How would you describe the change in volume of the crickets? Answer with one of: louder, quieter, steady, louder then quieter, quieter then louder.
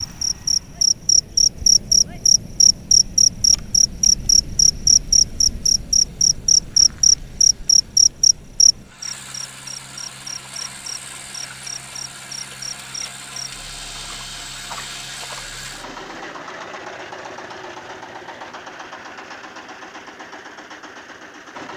quieter.